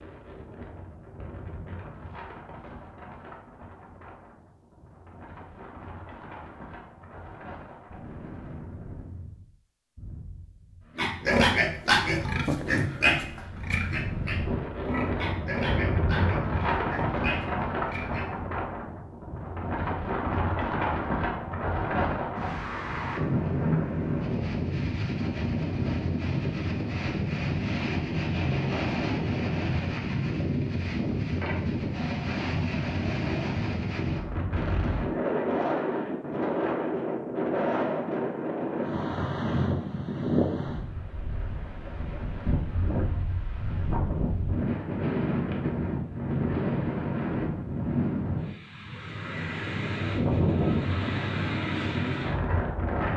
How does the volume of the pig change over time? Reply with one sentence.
The volume of the pig goes down.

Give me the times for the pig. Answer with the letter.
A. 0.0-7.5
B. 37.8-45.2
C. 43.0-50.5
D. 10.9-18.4
D.